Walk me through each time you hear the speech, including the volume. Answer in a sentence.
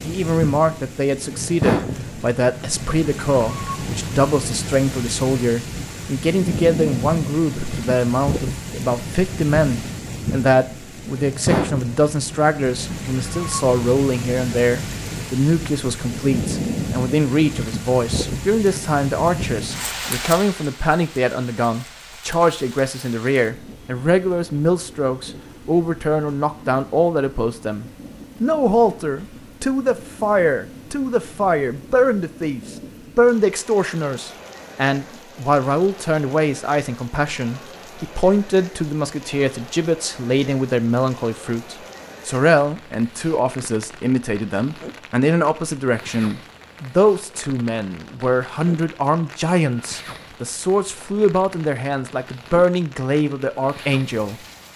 You can hear the speech from 0.1 to 54.4 s, at a steady volume.